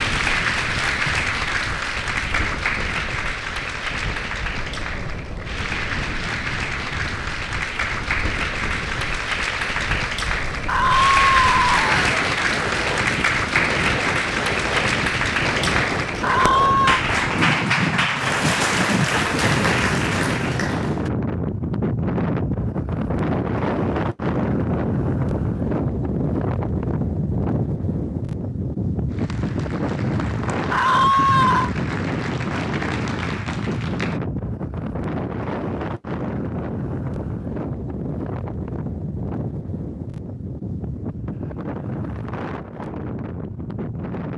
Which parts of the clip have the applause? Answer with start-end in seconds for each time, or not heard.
0.0-21.1, 29.1-34.2.